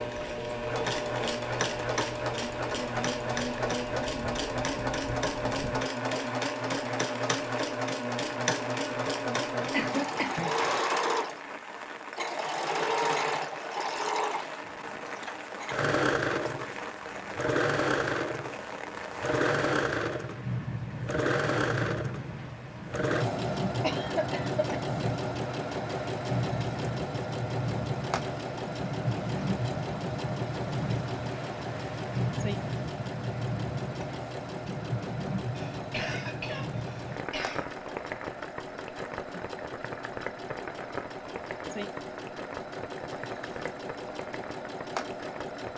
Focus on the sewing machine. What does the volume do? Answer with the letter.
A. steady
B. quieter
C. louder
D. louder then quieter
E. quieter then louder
B.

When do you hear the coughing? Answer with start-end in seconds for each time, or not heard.
9.6-10.8, 23.8-24.6, 35.5-37.6.